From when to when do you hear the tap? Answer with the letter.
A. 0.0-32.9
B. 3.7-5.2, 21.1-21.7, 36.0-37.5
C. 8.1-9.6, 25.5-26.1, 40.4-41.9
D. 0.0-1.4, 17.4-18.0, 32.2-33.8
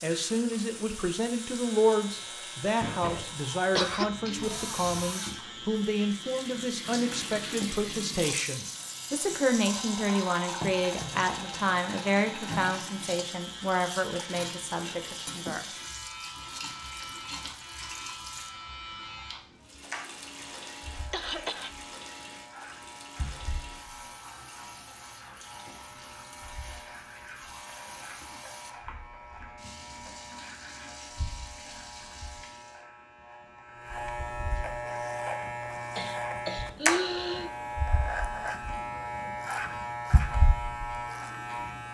A.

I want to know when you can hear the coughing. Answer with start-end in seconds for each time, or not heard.
3.7-5.2, 21.1-21.7, 36.0-37.5.